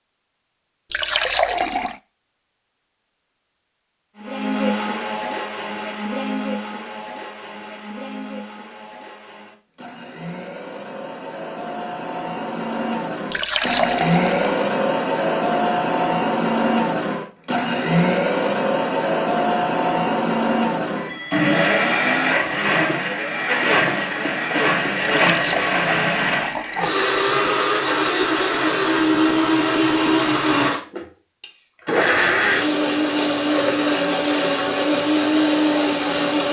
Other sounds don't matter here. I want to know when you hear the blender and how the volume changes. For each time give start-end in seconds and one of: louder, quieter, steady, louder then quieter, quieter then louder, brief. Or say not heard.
4.2-36.4 louder.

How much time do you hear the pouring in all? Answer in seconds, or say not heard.
4 s.